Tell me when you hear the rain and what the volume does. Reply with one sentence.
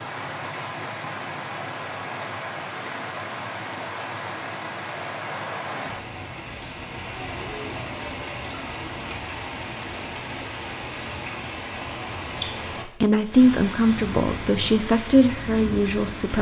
You can hear the rain from 0.0 to 16.3 s, at a steady volume.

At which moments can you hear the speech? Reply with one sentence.
You can hear the speech from 12.8 to 16.3 s.